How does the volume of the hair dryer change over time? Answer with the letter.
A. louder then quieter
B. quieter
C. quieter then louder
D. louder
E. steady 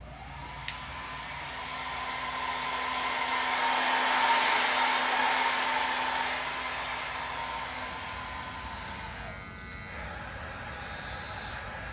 A.